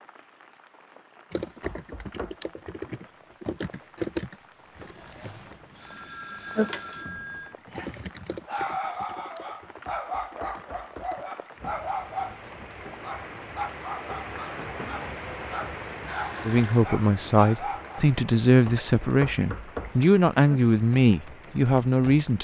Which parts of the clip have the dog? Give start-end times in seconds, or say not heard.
7.7-18.1.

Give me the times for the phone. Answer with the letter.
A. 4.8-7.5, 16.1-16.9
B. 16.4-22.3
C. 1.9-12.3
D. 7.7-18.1
A.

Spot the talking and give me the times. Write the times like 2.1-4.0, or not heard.
16.4-22.3.